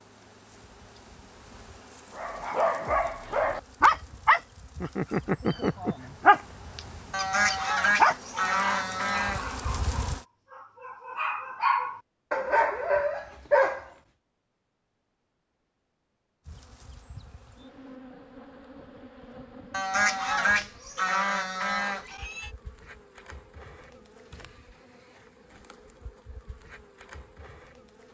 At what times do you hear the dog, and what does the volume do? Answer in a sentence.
The dog can be heard from 2.1 to 13.8 s, getting quieter then louder.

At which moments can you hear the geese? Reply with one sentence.
You can hear the geese from 7.1 to 9.6 s and from 19.7 to 22.5 s.